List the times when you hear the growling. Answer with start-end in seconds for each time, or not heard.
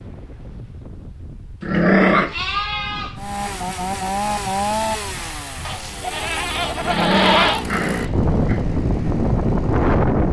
1.6-2.4, 6.8-8.7.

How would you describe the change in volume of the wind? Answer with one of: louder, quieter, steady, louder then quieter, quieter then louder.
louder.